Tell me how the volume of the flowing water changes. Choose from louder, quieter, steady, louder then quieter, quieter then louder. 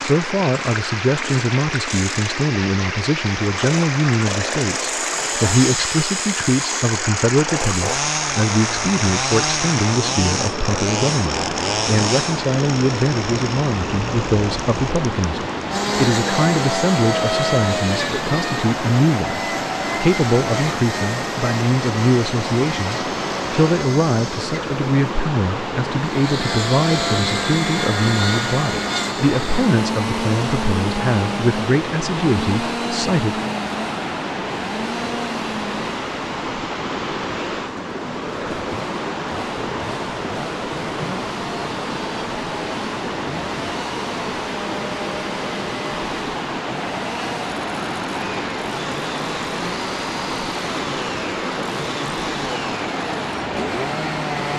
steady.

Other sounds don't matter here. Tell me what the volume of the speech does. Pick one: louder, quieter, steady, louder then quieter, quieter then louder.
steady.